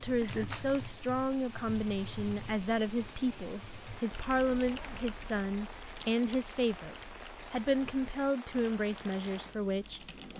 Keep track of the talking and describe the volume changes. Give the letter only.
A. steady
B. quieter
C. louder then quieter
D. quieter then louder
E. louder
A.